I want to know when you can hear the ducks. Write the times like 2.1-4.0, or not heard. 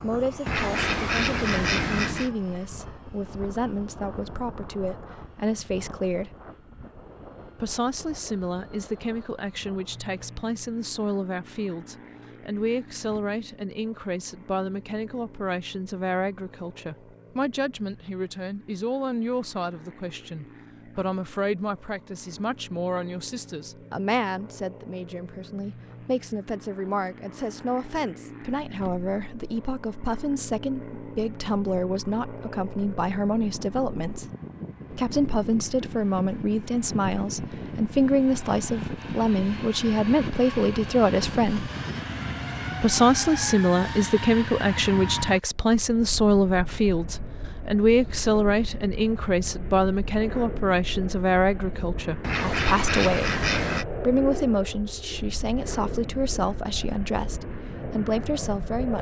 0.5-2.3, 52.2-53.9.